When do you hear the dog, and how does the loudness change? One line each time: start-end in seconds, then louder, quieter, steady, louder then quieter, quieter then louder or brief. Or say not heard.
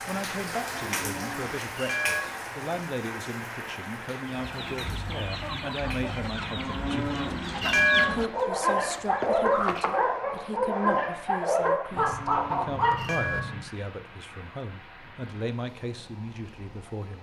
8.1-13.6 steady.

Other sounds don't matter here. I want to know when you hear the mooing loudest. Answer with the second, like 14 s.
8 s.